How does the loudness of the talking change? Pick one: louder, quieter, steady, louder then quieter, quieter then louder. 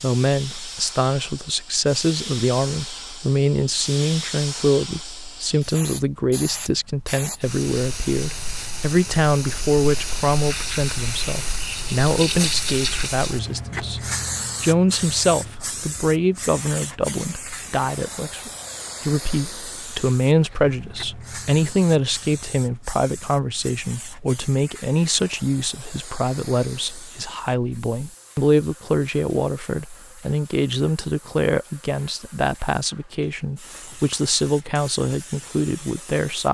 steady.